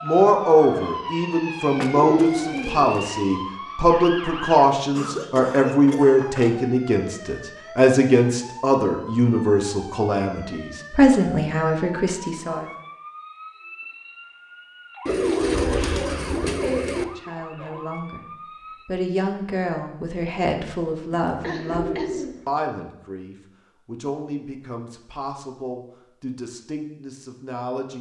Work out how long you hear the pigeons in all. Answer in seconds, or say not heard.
5 s.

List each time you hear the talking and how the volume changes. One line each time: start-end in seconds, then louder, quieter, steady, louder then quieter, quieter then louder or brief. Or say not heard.
0.0-12.7 steady
17.0-18.2 brief
18.9-27.9 quieter.